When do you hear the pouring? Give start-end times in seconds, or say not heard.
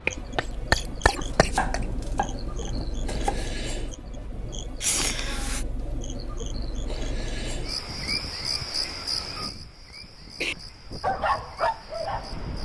not heard.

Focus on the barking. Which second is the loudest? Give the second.
11 s.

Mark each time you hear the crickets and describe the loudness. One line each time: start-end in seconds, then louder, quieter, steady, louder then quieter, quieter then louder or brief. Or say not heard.
0.0-12.6 louder then quieter.